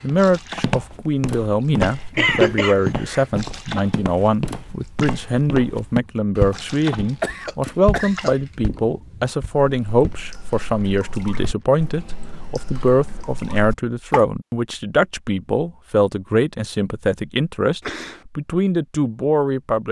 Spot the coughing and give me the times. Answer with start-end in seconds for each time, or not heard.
2.1-3.2, 7.2-8.3, 17.8-18.2.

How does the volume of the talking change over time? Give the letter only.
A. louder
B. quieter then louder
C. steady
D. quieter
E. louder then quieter
C.